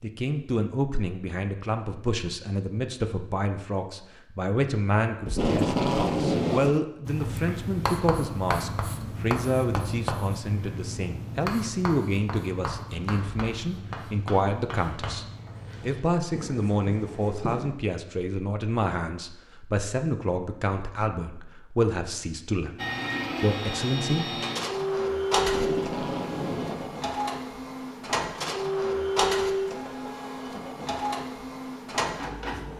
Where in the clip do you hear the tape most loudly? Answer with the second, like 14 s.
6 s.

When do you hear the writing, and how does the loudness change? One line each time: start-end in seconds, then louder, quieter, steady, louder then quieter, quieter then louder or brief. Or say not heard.
7.0-17.7 quieter.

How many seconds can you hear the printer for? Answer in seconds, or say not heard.
10 s.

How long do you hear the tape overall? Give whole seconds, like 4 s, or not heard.
3 s.